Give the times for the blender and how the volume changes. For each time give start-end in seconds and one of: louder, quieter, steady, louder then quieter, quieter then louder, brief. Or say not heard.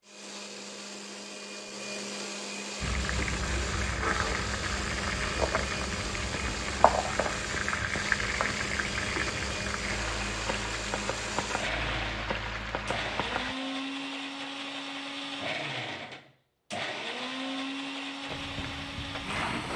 0.0-19.7 steady.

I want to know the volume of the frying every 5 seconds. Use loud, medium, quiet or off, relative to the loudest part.
loud, loud, loud, medium.